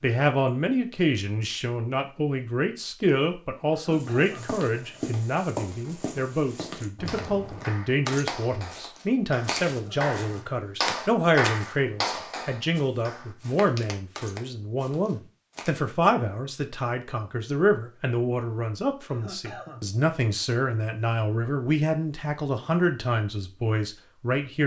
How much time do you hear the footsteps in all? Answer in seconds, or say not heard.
12 s.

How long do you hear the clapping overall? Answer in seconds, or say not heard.
6 s.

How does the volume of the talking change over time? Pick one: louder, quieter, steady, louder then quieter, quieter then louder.
steady.